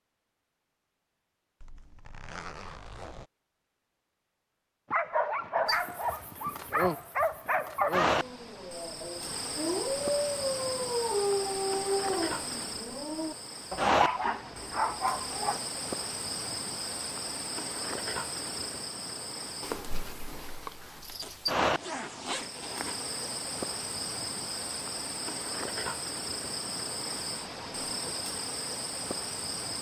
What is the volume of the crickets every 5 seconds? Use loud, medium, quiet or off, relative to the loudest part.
off, loud, loud, loud, loud, loud.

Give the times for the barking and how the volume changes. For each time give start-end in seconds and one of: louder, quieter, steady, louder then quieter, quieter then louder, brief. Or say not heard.
4.9-15.6 steady.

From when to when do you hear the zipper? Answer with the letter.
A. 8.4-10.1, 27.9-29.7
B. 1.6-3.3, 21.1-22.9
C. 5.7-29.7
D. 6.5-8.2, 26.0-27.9
B.